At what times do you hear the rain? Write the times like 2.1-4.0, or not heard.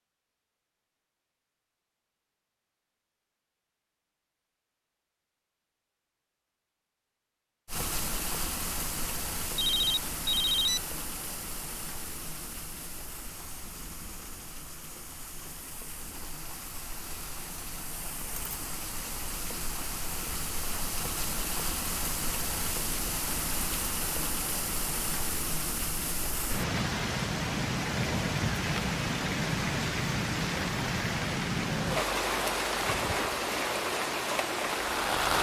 7.7-35.3.